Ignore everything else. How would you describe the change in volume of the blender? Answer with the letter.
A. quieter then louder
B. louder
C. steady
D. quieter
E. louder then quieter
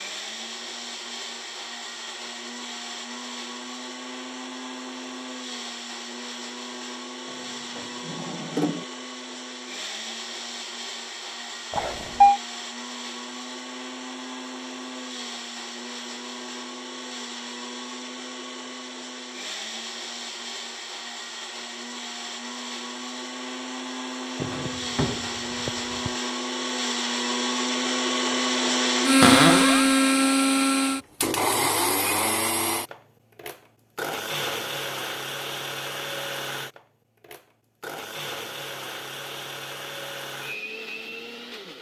E.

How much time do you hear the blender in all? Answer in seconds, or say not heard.
42 s.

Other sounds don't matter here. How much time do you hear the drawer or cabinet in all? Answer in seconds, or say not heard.
4 s.